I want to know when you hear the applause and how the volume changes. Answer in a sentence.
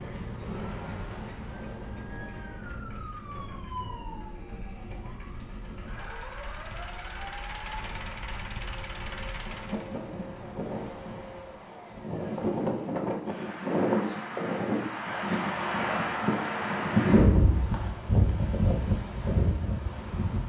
You can't hear the applause here.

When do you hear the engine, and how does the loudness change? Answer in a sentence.
You can hear the engine from 0.0 to 9.9 s, getting quieter then louder.